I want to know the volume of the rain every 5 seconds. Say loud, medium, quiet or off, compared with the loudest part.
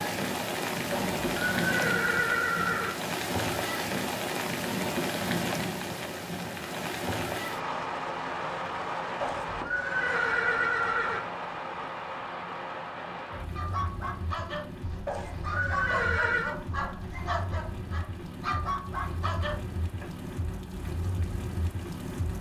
loud, loud, medium, medium, medium.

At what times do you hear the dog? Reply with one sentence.
The dog can be heard from 13.6 to 20.1 s.